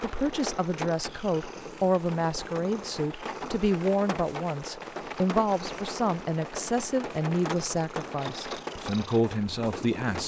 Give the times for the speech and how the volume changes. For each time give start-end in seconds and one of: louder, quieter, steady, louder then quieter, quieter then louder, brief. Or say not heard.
0.0-10.2 steady.